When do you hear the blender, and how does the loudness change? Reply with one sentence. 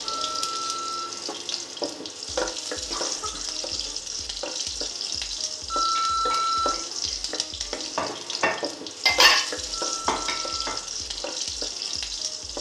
You can't hear the blender here.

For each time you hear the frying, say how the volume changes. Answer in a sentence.
You can hear the frying from 0.0 to 12.5 s, at a steady volume.